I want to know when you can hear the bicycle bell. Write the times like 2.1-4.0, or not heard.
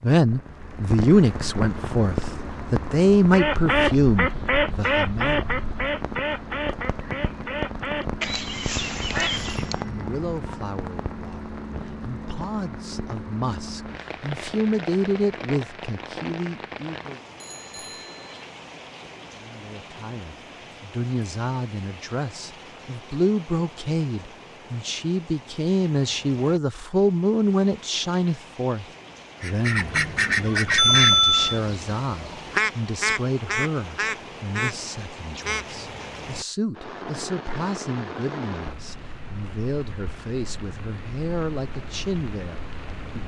9.3-10.2, 17.4-18.4, 30.8-31.6.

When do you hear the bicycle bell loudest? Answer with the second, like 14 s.
31 s.